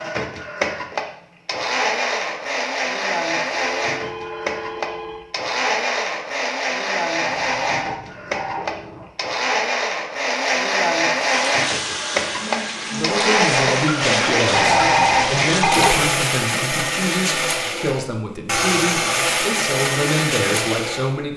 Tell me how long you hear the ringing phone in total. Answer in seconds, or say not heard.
5 s.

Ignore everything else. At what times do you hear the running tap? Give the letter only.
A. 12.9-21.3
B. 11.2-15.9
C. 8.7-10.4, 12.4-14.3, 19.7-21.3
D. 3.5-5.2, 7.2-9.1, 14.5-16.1
B.